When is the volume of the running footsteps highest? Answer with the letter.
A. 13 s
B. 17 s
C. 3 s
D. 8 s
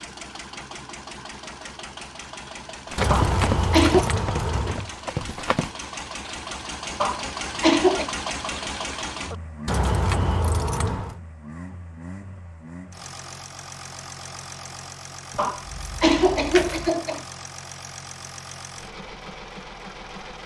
C.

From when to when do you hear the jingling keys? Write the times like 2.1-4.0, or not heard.
3.0-4.9, 9.7-11.2, 15.3-16.9.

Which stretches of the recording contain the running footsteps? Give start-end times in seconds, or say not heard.
2.9-5.7.